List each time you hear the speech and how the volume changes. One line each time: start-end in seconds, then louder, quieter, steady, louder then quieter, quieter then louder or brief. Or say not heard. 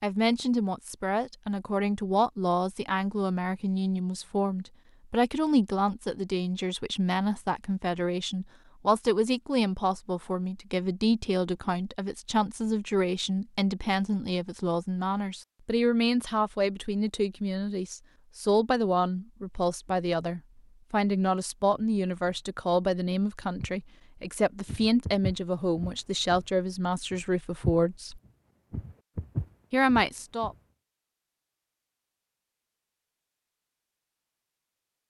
0.0-28.2 steady
29.7-30.6 brief.